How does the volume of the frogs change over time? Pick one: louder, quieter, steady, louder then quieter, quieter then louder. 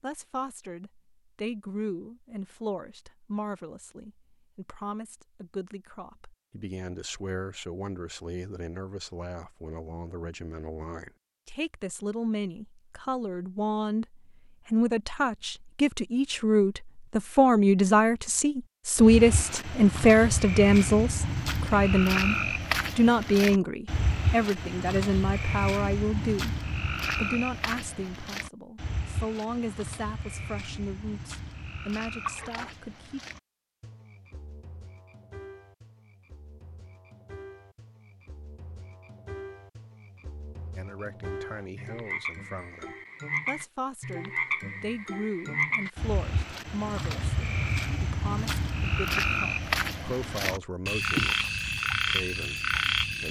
quieter then louder.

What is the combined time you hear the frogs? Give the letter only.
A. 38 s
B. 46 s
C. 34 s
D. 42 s
C.